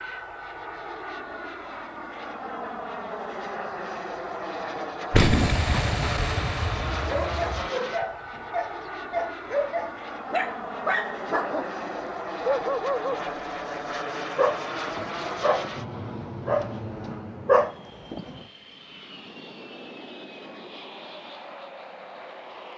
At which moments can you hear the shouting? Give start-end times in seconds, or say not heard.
not heard.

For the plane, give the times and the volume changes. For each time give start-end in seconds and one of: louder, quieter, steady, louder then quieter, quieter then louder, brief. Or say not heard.
0.0-22.7 quieter.